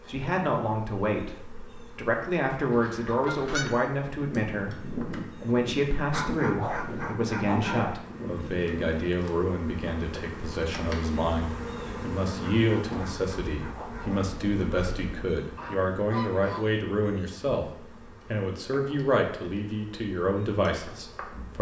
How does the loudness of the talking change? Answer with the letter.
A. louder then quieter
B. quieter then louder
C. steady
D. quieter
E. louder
C.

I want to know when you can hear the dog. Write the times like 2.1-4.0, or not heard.
6.1-8.0, 12.4-14.2.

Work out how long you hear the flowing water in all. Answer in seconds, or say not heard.
not heard.